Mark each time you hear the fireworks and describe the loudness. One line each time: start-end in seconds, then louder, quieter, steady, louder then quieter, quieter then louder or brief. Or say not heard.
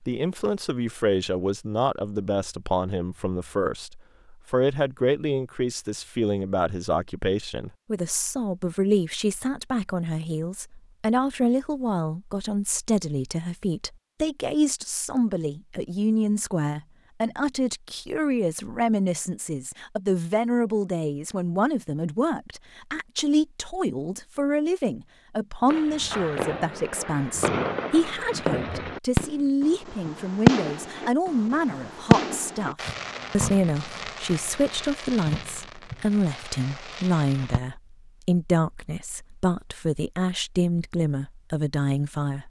25.6-37.6 louder then quieter.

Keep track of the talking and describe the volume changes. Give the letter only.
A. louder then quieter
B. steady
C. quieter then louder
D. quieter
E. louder
B.